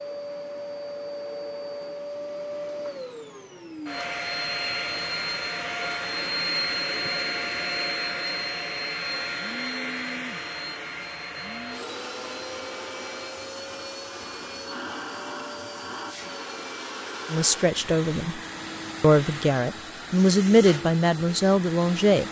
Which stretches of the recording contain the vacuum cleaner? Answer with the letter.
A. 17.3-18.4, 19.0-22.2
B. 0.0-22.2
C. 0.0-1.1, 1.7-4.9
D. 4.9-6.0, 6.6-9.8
B.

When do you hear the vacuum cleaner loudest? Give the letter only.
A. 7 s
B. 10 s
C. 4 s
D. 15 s
A.